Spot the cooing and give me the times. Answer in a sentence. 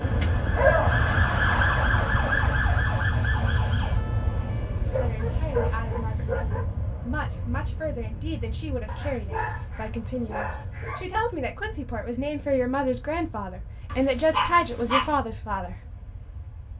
You can't hear the cooing here.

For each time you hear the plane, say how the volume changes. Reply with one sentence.
You can hear the plane from 0.0 to 16.7 s, getting quieter.